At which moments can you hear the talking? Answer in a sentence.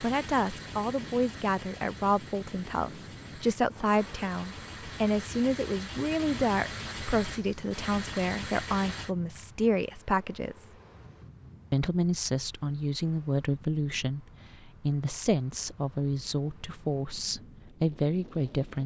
The talking can be heard from 0.0 to 10.7 s and from 11.7 to 18.8 s.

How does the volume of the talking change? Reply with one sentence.
The loudness of the talking stays about the same.